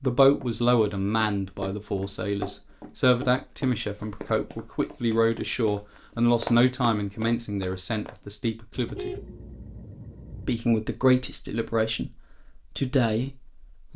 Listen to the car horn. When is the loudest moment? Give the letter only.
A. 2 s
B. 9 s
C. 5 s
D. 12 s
B.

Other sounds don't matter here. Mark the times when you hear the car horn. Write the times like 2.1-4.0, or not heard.
8.8-10.6.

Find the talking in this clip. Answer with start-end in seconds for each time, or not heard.
0.0-9.2, 10.4-13.9.